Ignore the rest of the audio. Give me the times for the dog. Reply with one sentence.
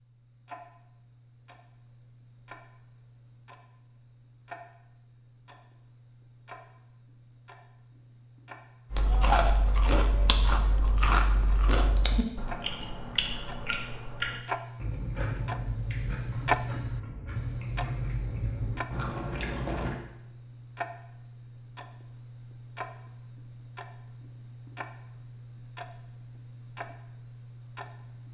You can't hear the dog here.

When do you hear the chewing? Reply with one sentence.
The chewing can be heard from 8.9 to 19.9 s.